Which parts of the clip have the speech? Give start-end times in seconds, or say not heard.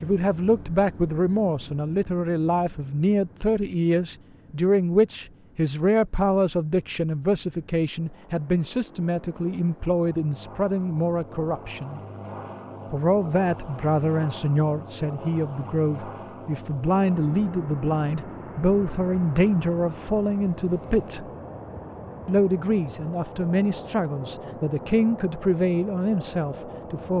0.0-12.0, 12.9-21.2, 22.2-27.1.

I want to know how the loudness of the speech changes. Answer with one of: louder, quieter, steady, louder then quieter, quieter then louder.
steady.